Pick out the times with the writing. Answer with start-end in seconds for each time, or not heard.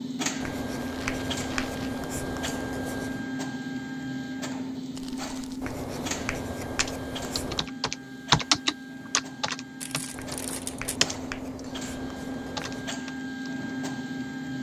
0.4-3.2, 5.6-7.7, 10.1-12.9.